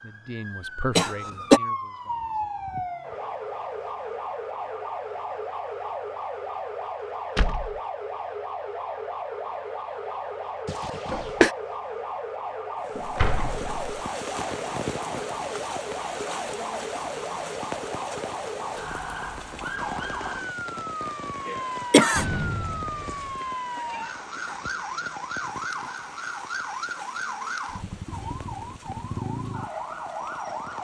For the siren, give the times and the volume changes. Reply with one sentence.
You can hear the siren from 0.0 to 30.8 s, at a steady volume.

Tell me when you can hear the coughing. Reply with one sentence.
You can hear the coughing from 0.9 to 1.6 s, from 10.7 to 11.5 s and from 21.4 to 22.2 s.